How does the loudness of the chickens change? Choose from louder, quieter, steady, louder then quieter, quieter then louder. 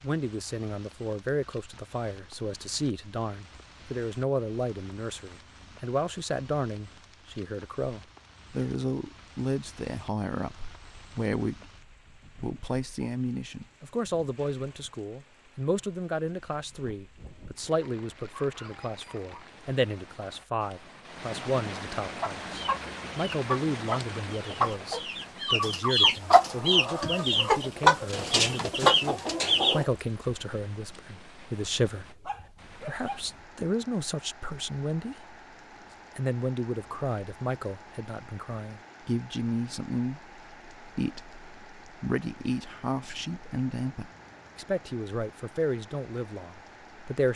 louder.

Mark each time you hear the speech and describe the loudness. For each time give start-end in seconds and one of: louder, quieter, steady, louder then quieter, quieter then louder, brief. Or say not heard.
0.0-35.4 steady
36.1-47.3 steady.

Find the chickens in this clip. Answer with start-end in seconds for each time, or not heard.
22.2-29.9.